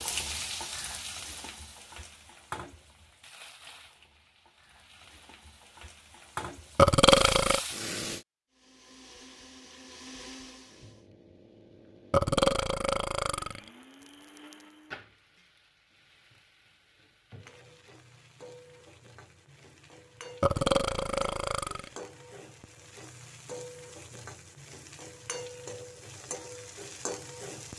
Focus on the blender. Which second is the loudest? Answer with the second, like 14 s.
10 s.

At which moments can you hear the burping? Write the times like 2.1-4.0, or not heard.
6.8-7.6, 12.1-13.7, 20.4-22.0.